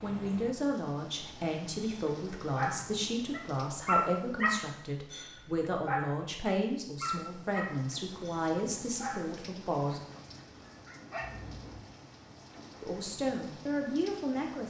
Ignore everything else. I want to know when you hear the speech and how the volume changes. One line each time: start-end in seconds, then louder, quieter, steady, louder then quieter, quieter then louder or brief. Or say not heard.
0.0-10.0 steady
12.8-14.6 brief.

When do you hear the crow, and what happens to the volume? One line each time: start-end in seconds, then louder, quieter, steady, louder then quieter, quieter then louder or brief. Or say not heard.
not heard.